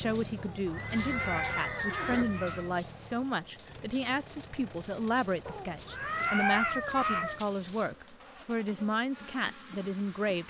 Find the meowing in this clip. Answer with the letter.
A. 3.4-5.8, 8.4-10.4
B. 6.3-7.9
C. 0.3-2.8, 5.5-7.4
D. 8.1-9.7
C.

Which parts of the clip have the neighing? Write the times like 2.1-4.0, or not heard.
0.7-2.2.